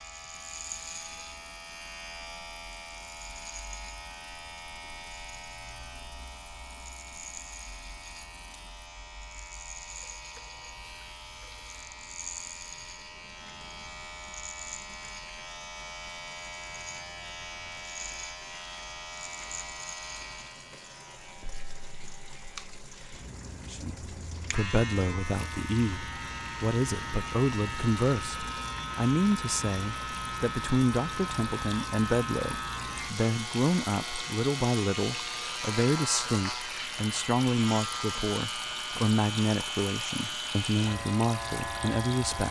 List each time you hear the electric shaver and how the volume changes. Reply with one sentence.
You can hear the electric shaver from 0.0 to 42.4 s, getting louder.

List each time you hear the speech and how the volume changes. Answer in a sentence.
The speech can be heard from 23.7 to 42.4 s, at a steady volume.